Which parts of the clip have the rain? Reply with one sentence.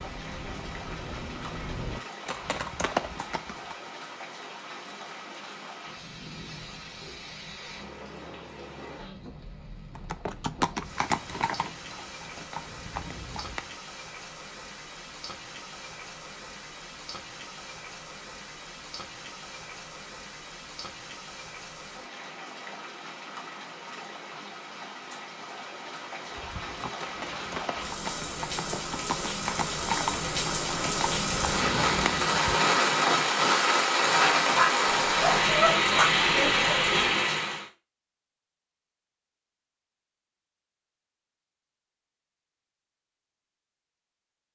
The rain can be heard from 0.0 to 37.6 s.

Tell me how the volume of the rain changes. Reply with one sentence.
The volume of the rain goes up.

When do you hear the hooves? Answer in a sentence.
The hooves can be heard from 0.0 to 3.9 s, from 9.9 to 13.7 s and from 26.2 to 32.3 s.